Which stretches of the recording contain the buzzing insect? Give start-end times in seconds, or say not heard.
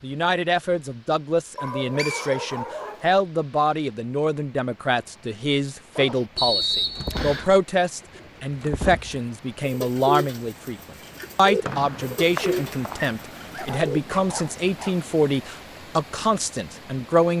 not heard.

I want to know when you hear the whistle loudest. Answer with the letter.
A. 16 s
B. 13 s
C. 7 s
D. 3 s
C.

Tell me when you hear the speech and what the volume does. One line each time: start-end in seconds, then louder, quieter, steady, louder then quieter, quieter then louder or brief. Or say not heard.
0.0-17.3 steady.